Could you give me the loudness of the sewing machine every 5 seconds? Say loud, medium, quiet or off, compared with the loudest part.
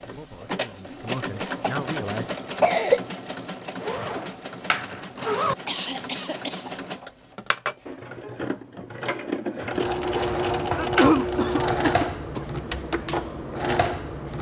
medium, medium, loud.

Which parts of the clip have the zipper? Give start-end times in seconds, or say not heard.
3.8-5.5, 10.1-11.2.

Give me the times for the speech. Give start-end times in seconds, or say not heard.
0.0-2.4.